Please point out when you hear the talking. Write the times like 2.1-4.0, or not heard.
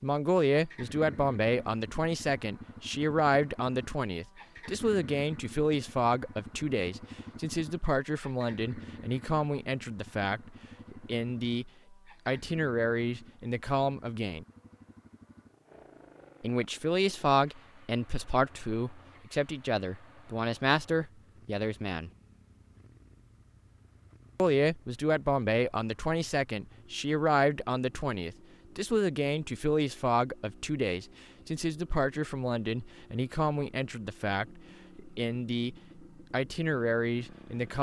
0.0-14.4, 16.4-22.1, 24.4-37.7.